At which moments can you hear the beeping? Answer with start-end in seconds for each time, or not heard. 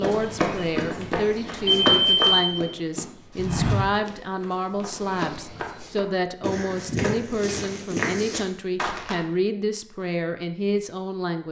1.6-2.6.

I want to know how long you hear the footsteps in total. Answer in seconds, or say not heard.
9 s.